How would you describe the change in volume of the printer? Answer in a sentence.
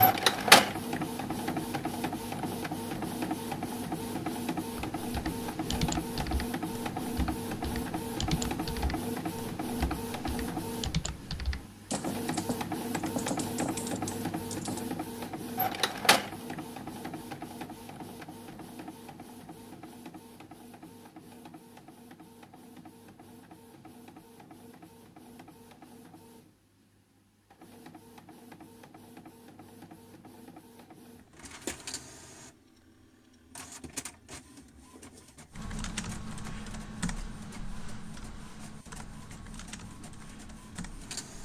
The loudness of the printer goes down.